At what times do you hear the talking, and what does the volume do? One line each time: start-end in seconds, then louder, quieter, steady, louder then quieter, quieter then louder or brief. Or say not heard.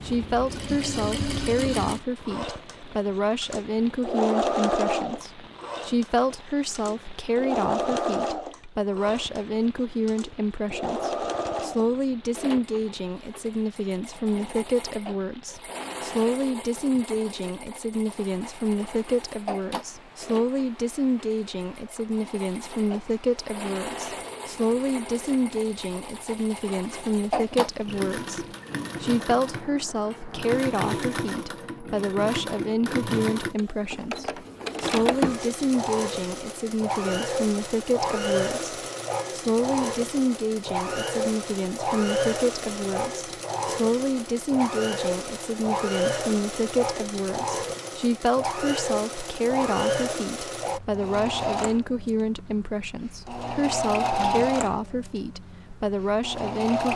0.0-56.9 steady.